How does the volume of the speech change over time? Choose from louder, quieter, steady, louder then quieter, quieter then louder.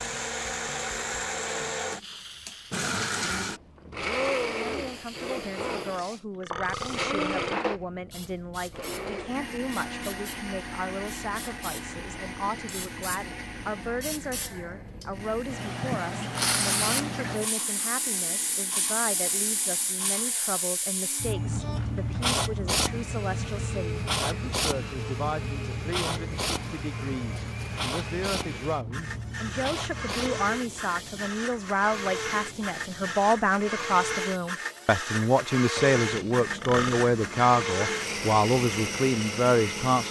louder.